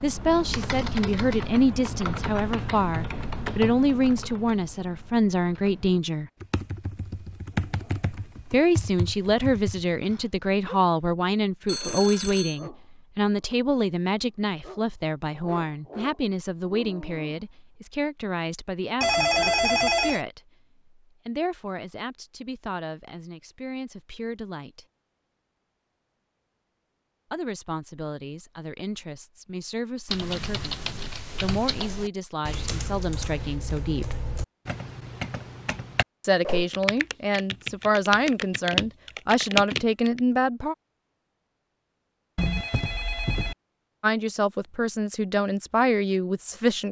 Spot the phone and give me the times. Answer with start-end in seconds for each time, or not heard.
11.7-12.6, 19.0-20.2, 42.4-43.5.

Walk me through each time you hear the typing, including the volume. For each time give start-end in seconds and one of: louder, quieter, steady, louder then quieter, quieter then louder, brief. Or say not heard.
0.0-10.2 quieter then louder
30.1-40.2 louder.